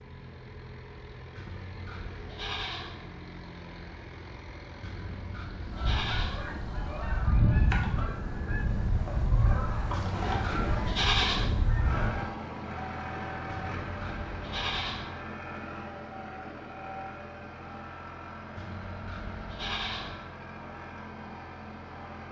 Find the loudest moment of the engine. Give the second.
12 s.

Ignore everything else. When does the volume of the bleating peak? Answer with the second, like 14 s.
11 s.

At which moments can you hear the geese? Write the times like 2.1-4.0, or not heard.
5.7-12.2.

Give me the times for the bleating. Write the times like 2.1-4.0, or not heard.
1.4-3.0, 4.8-6.4, 9.9-11.5, 13.5-15.1, 18.6-20.1.